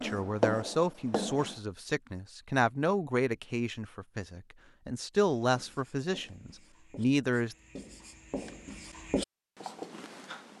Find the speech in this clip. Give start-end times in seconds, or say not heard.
0.0-7.5.